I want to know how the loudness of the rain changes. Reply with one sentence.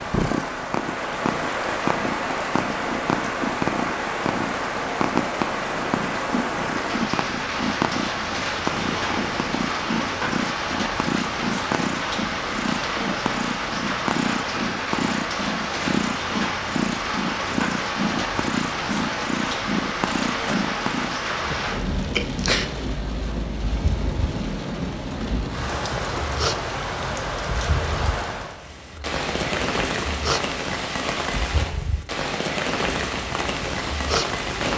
The loudness of the rain stays about the same.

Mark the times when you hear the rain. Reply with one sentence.
You can hear the rain from 0.0 to 34.7 s.